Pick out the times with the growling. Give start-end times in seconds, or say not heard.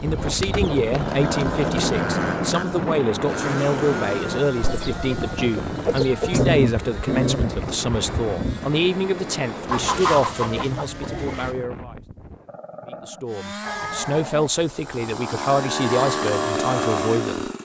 0.9-2.9, 6.2-8.8, 12.4-14.5.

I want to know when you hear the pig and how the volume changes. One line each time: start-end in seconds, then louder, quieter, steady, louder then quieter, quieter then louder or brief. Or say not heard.
not heard.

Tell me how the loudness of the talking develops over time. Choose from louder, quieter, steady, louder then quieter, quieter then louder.
steady.